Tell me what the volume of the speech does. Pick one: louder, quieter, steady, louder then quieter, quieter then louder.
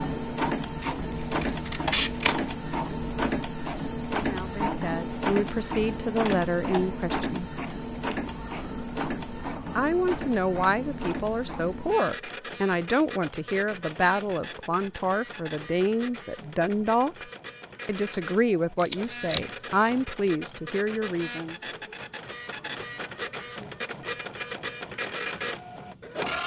steady.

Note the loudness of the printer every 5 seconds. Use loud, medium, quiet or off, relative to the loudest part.
loud, loud, medium, medium, medium, loud.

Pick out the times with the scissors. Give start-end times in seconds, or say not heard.
0.8-2.5, 18.8-20.0.